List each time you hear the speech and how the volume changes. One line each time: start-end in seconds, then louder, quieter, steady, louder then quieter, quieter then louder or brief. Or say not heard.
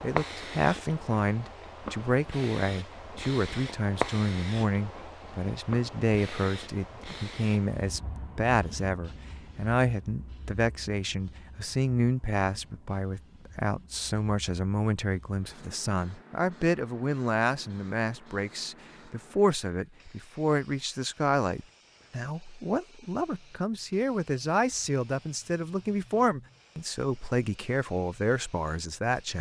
0.0-29.3 steady.